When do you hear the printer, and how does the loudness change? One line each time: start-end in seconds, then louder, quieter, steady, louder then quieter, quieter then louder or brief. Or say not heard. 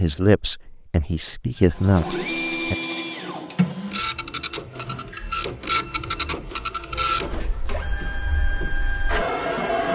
1.6-9.9 steady.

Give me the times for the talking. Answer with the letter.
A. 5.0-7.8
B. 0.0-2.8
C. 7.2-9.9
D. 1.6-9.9
B.